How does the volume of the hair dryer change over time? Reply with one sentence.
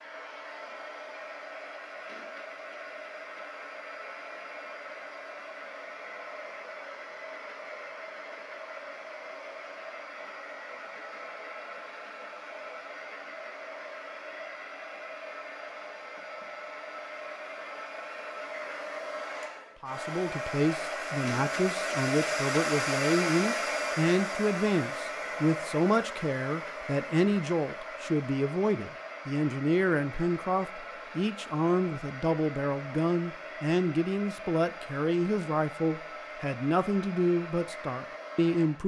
The loudness of the hair dryer goes up, then down.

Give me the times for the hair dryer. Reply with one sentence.
You can hear the hair dryer from 0.0 to 38.8 s.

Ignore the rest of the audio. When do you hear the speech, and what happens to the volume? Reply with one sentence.
The speech can be heard from 19.8 to 38.8 s, at a steady volume.